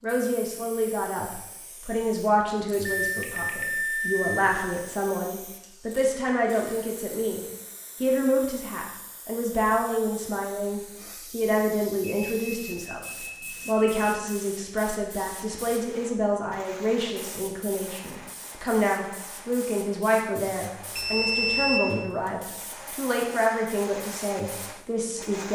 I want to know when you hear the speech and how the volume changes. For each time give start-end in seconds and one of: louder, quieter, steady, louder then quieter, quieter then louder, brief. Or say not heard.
0.0-25.5 steady.